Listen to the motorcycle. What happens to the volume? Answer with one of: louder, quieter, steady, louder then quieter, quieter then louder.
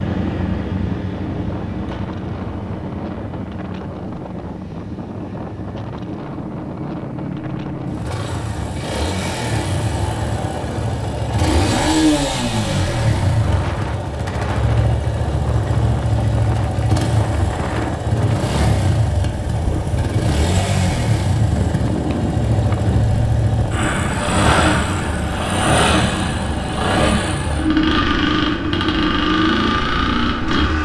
louder.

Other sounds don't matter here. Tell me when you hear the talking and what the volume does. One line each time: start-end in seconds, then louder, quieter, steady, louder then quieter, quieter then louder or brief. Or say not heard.
not heard.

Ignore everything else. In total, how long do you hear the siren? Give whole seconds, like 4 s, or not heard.
not heard.